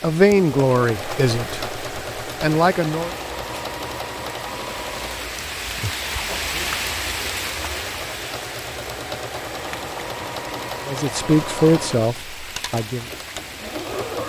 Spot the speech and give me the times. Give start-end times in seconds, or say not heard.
0.0-3.1, 10.8-13.1.